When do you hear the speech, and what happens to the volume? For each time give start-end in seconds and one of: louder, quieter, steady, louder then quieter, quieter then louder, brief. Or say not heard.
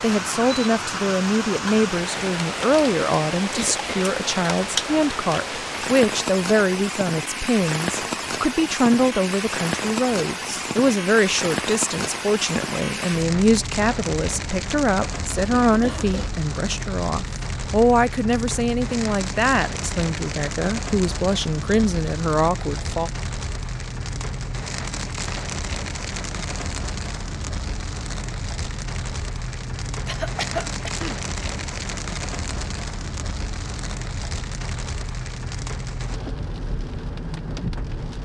0.0-23.1 steady.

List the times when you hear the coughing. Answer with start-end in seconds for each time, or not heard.
3.5-4.1, 15.7-16.4, 30.1-31.2.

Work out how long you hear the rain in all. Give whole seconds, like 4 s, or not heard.
38 s.